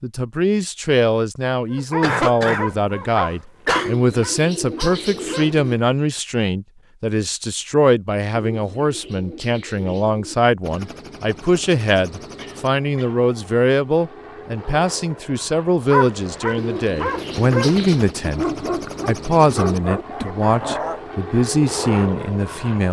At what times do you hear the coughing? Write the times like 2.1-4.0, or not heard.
2.0-4.0, 12.3-13.2, 20.1-20.8.